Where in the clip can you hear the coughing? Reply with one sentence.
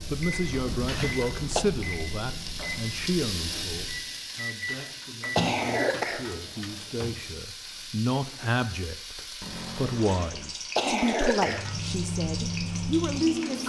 You can hear the coughing from 0.8 to 1.6 s, from 4.7 to 6.7 s and from 10.1 to 11.8 s.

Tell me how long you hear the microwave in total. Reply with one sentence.
You can hear the microwave for 8 seconds altogether.